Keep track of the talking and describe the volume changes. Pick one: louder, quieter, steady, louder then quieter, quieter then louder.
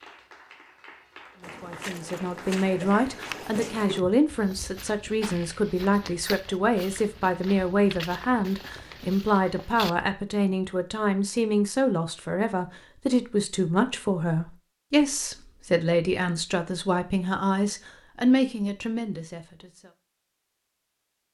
steady.